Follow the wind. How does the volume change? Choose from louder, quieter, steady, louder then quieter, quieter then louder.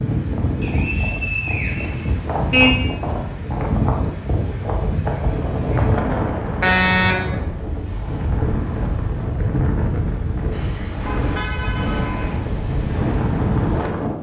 steady.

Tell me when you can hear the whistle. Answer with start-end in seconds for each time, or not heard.
0.6-2.1.